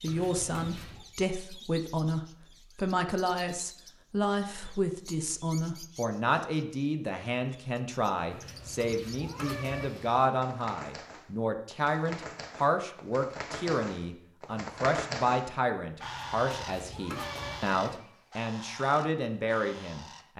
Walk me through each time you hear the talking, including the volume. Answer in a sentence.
The talking can be heard from 0.0 to 20.3 s, at a steady volume.